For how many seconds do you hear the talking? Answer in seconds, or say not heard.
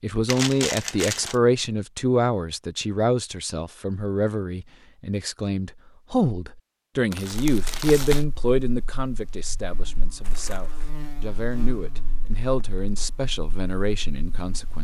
15 s.